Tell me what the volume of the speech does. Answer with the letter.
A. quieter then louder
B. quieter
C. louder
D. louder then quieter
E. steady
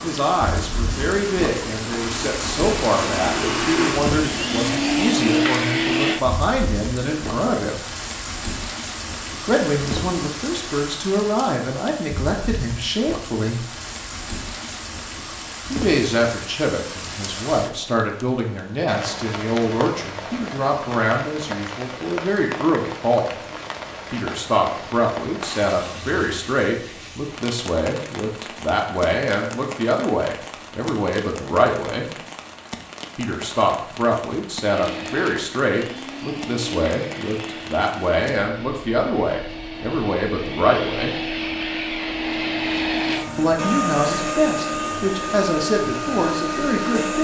E.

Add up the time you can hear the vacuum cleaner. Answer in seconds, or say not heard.
19 s.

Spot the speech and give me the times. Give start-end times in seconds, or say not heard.
0.0-7.8, 9.4-13.6, 15.7-23.4, 24.1-32.1, 33.1-41.1, 43.4-47.1.